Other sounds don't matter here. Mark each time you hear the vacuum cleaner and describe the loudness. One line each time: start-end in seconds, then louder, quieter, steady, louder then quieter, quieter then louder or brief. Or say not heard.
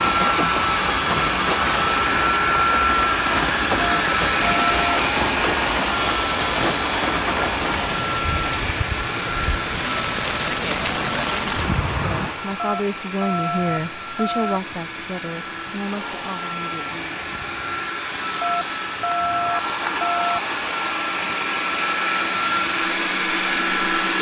0.0-24.1 quieter then louder.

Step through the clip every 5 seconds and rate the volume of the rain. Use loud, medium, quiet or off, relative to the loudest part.
loud, loud, loud, quiet, quiet.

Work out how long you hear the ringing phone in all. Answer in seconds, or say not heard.
5 s.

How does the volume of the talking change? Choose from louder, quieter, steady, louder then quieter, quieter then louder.
quieter.